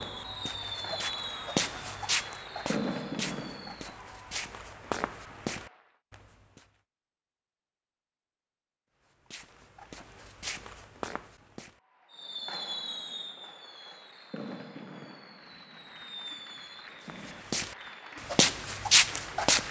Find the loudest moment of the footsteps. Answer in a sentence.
The loudest moment of the footsteps is at 19 seconds.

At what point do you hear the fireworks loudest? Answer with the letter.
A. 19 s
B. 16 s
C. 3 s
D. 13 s
C.